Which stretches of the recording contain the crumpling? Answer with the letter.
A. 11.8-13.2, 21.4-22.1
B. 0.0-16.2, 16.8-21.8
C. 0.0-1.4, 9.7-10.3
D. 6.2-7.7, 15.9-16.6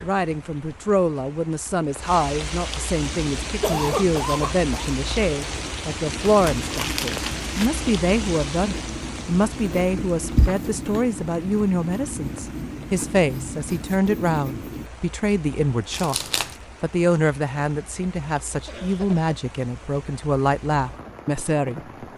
D.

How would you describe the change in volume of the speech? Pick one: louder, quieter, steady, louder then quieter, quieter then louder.
steady.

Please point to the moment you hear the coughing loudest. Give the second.
4 s.